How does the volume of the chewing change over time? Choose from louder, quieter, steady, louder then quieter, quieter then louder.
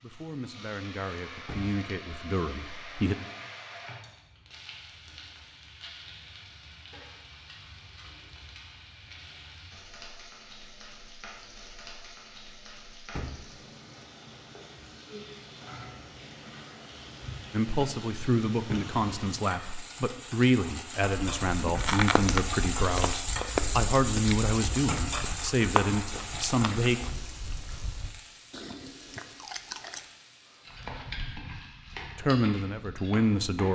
quieter.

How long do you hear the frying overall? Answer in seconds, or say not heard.
34 s.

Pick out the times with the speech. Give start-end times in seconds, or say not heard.
0.0-3.1, 17.5-27.0, 32.1-33.7.